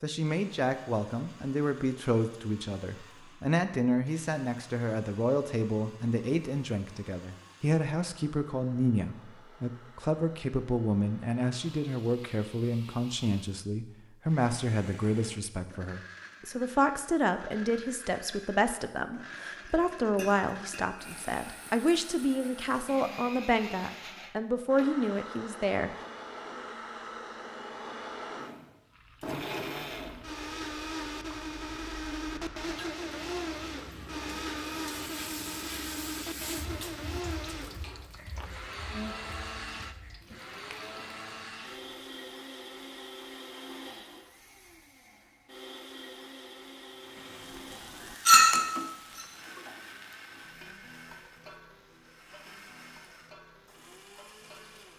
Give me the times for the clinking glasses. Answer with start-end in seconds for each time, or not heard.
19.7-21.1, 48.2-49.2.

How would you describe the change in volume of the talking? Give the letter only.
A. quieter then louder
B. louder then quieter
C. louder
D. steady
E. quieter
D.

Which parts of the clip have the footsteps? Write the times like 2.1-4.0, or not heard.
not heard.